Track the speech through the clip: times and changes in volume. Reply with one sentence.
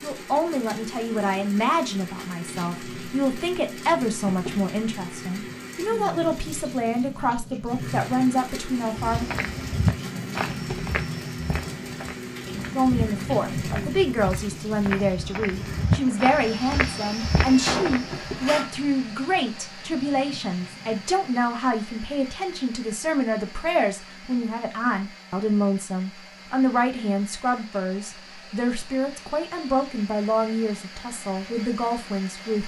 You can hear the speech from 0.0 to 9.2 s, at a steady volume; and from 12.7 to 32.6 s, at a steady volume.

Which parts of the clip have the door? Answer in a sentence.
The door can be heard from 17.4 to 18.7 s.